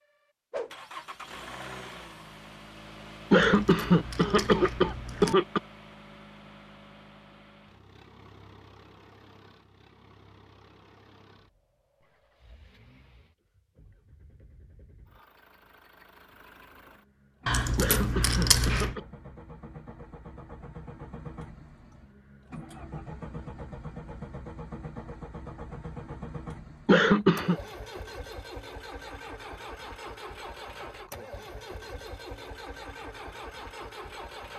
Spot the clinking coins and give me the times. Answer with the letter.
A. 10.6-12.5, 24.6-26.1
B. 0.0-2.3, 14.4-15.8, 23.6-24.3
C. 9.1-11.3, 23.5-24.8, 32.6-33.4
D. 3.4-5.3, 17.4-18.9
D.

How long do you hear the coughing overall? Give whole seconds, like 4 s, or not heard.
4 s.